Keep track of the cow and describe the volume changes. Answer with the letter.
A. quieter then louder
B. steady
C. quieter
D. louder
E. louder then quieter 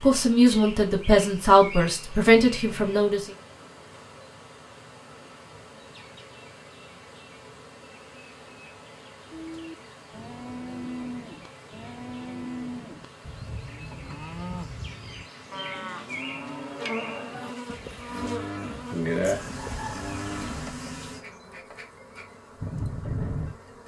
B.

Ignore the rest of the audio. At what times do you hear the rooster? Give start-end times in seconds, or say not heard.
19.1-20.7.